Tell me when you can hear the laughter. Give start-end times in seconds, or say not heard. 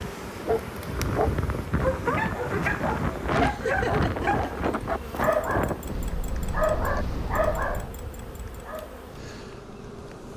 3.4-4.5.